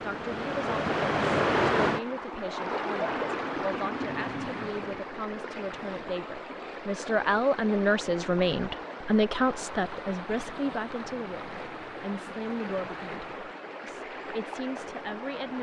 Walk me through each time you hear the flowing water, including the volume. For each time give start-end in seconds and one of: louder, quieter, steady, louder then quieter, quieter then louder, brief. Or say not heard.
0.0-15.5 quieter.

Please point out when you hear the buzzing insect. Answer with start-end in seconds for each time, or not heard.
not heard.